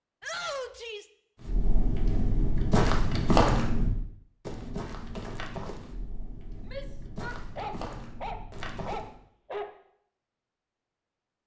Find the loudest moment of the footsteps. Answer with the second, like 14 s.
3 s.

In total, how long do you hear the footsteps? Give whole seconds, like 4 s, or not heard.
8 s.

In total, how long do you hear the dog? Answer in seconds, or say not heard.
2 s.